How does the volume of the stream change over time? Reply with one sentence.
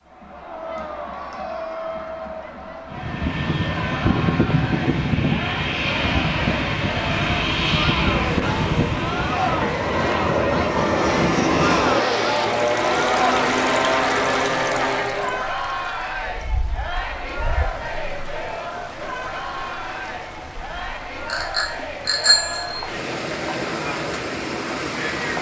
The volume of the stream goes down, then up.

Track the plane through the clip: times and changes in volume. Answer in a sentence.
The plane can be heard from 2.9 to 15.4 s, at a steady volume.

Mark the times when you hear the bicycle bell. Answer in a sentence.
You can hear the bicycle bell from 21.2 to 22.9 s.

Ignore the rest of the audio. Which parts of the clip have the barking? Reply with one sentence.
You can't hear the barking here.